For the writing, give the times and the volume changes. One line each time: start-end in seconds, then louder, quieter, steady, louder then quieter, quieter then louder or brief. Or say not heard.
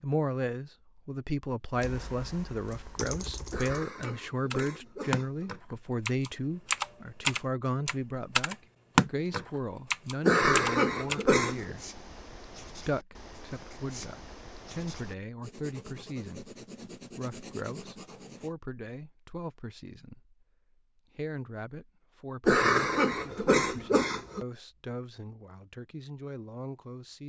11.4-18.5 steady.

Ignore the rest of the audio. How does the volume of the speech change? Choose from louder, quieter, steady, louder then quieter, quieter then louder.
quieter.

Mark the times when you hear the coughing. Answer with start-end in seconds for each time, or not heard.
3.5-5.5, 10.2-11.8, 22.4-24.4.